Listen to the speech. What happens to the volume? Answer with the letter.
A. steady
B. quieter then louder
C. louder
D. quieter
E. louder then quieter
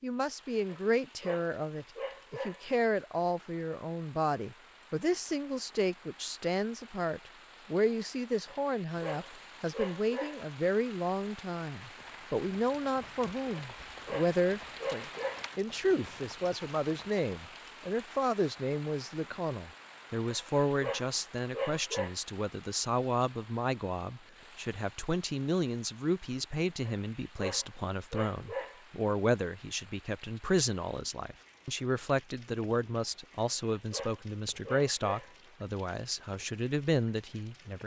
A.